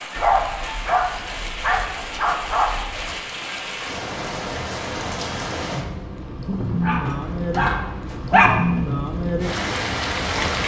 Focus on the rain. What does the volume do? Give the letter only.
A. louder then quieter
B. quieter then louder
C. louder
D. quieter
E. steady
C.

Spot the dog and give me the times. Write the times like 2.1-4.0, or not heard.
0.1-3.1, 6.8-8.6.